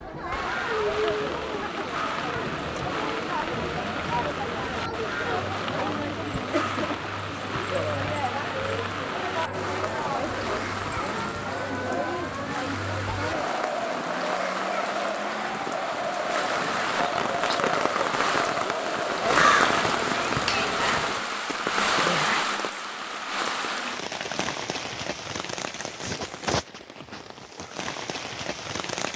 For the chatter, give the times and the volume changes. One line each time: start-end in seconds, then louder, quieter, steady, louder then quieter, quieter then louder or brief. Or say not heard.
0.0-21.2 steady.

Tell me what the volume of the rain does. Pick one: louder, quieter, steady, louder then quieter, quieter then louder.
louder then quieter.